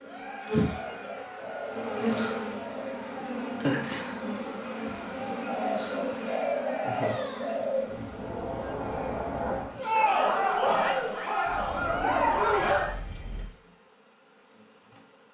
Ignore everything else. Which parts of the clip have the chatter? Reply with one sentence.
The chatter can be heard from 0.0 to 12.9 s.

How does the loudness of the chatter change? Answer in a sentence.
The loudness of the chatter goes up.